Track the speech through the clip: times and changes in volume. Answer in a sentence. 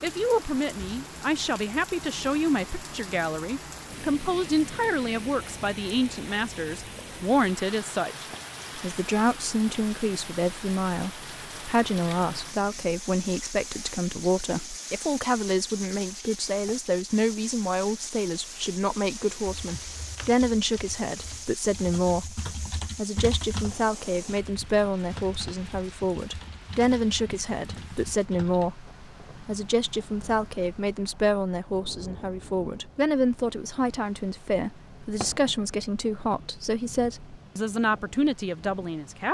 The speech can be heard from 0.0 to 39.2 s, at a steady volume.